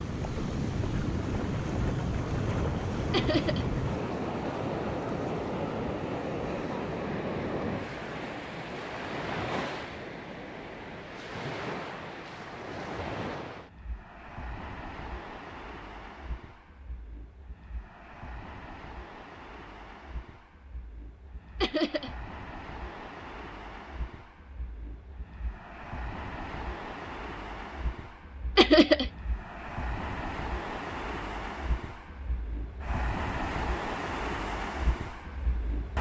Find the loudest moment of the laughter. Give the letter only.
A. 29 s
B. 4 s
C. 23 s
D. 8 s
A.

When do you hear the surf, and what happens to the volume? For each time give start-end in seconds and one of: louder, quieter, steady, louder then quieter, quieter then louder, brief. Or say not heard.
0.0-35.9 quieter then louder.